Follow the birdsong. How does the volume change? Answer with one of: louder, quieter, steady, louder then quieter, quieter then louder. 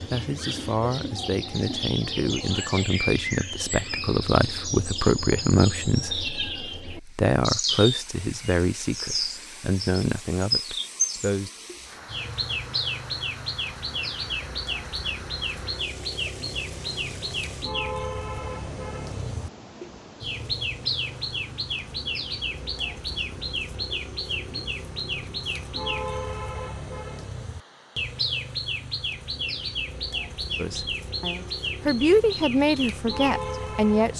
steady.